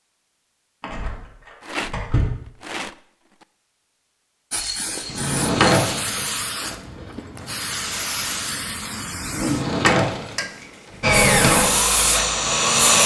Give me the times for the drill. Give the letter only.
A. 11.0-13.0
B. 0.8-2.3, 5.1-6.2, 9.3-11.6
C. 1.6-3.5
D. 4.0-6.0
A.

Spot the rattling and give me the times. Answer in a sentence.
The rattling can be heard from 1.6 to 3.5 s.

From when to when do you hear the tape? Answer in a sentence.
You can't hear the tape here.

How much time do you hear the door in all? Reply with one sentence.
You can hear the door for 5 seconds altogether.